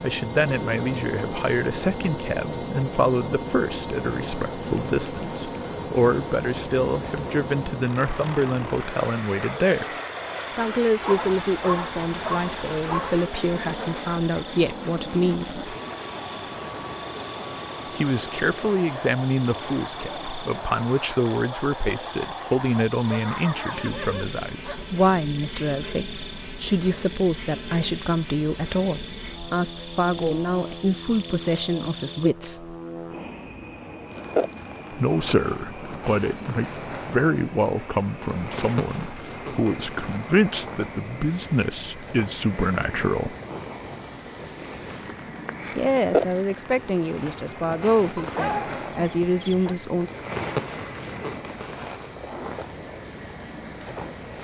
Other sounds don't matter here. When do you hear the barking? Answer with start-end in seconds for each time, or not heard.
11.0-13.2, 23.0-24.9, 48.1-49.8.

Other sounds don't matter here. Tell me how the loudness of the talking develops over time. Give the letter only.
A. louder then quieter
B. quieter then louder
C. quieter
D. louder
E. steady
E.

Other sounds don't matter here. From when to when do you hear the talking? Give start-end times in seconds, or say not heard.
0.0-9.9, 10.6-15.7, 17.9-32.8, 34.9-43.4, 45.8-50.1.